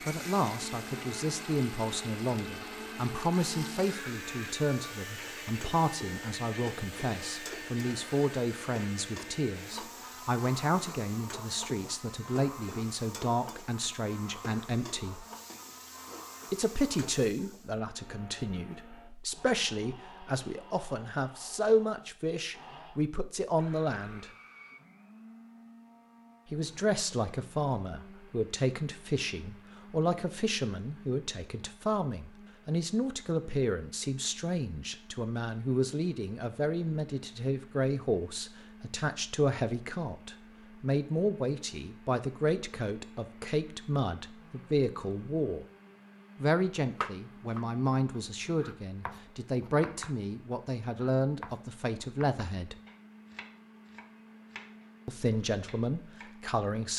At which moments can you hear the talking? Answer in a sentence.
The talking can be heard from 0.1 to 15.2 s, from 16.5 to 24.3 s, from 26.5 to 45.6 s, from 46.4 to 52.8 s and from 55.0 to 56.9 s.